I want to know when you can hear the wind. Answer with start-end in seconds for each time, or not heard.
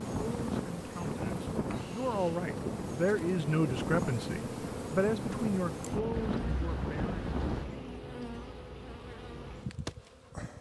0.0-7.9.